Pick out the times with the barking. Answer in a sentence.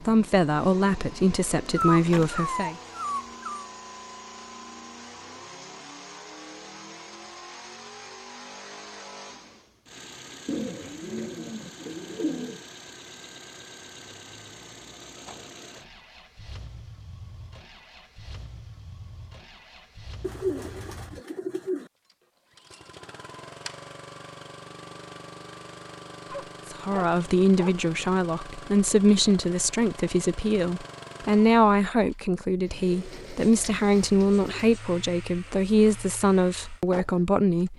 You can hear the barking from 1.8 to 3.7 s and from 26.3 to 27.8 s.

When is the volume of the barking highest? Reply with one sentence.
The loudest moment of the barking is at 2 seconds.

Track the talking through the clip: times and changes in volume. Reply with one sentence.
The talking can be heard briefly from 0.0 to 2.8 s; and from 26.7 to 37.7 s, at a steady volume.